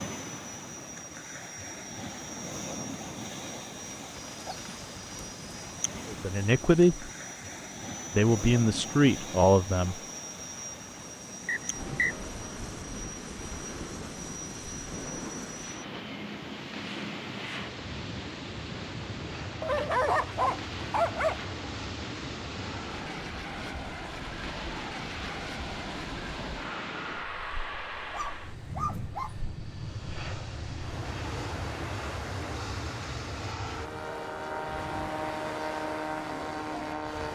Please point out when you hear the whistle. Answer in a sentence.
The whistle can be heard from 11.4 to 12.2 s.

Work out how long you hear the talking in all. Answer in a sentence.
The talking can be heard for 3 seconds in total.